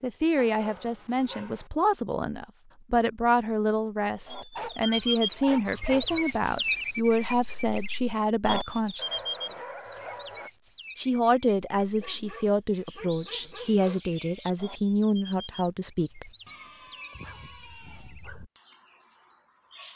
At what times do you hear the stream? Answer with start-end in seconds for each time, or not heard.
not heard.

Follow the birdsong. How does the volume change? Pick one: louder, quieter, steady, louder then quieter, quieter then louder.
quieter.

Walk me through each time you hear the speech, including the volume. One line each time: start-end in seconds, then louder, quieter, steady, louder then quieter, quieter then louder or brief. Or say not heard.
0.0-9.1 steady
10.9-16.3 steady.